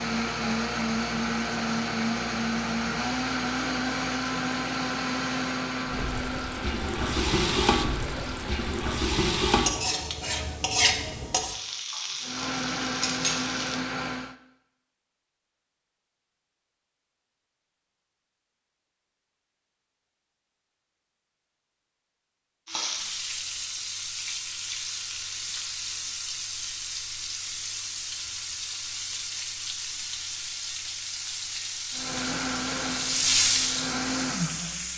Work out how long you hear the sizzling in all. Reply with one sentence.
You can hear the sizzling for 20 seconds altogether.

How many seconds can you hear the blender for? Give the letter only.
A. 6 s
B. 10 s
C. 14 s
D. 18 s
C.